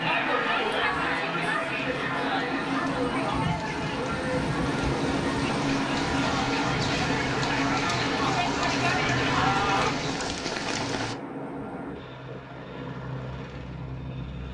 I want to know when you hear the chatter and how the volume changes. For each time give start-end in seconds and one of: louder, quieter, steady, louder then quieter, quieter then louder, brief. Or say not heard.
0.0-9.9 quieter then louder.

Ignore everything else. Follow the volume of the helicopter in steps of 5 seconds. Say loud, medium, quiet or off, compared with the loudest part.
loud, loud, medium.